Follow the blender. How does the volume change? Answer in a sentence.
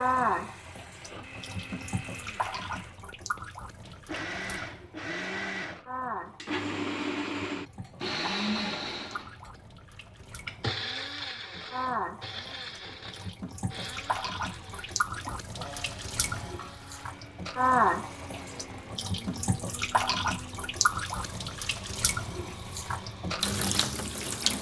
The loudness of the blender goes up, then down.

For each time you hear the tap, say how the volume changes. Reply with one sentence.
The tap can be heard from 0.0 to 24.5 s, getting louder.